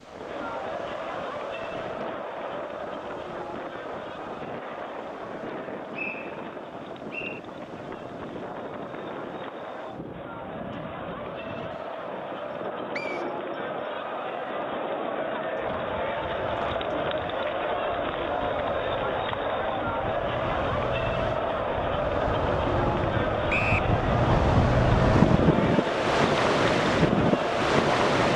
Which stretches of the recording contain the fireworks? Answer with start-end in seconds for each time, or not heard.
not heard.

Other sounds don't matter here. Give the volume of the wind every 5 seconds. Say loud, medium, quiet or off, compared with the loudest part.
quiet, quiet, quiet, quiet, medium, loud.